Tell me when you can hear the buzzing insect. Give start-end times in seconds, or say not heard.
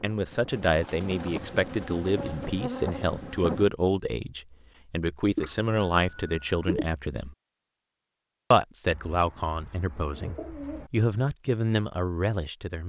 0.1-3.6.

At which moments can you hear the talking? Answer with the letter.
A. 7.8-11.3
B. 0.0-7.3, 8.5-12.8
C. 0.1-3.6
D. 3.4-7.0
B.